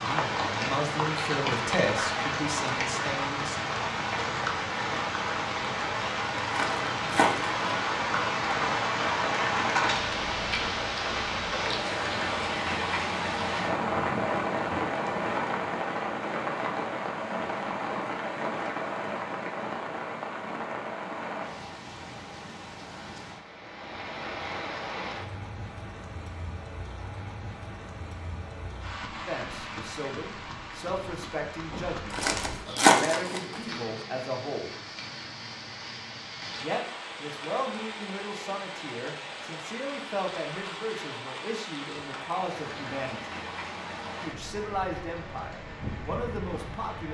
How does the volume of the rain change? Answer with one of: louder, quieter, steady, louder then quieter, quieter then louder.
quieter.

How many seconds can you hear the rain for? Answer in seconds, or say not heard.
47 s.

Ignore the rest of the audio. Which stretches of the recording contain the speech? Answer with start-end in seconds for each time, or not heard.
0.0-3.6, 29.2-34.8, 36.6-43.4, 44.2-47.0.